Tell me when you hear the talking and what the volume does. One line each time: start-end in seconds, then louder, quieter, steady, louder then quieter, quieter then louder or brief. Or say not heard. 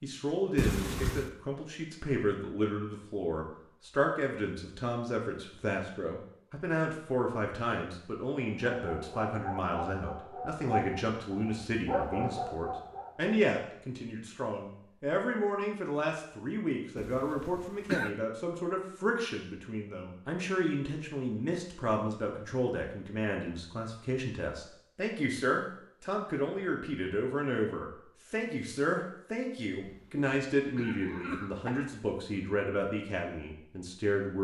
0.0-34.4 steady.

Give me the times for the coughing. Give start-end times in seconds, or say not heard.
0.6-1.3, 16.9-18.1, 29.8-31.9.